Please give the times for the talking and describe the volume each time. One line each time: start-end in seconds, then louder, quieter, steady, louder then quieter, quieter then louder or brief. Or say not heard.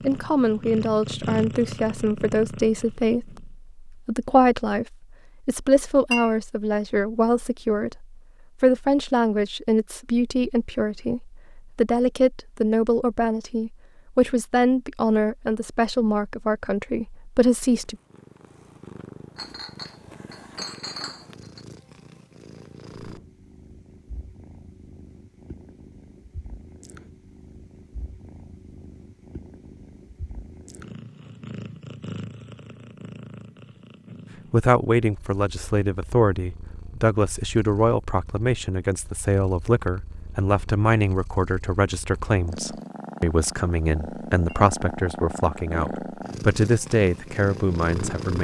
0.0-17.9 steady
34.5-48.3 steady.